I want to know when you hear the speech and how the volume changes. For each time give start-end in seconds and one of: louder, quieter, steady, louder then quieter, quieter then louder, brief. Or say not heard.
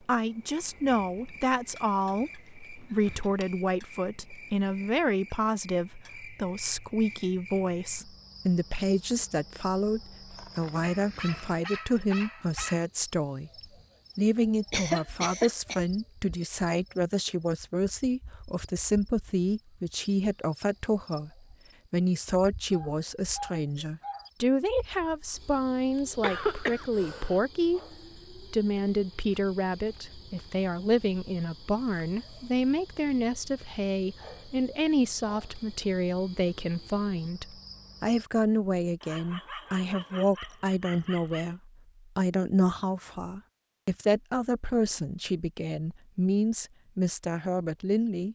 0.1-13.5 steady
14.2-21.3 steady
21.9-48.3 steady.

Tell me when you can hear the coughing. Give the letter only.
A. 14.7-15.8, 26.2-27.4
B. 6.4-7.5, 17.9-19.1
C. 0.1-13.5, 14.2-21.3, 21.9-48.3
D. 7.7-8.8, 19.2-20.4
A.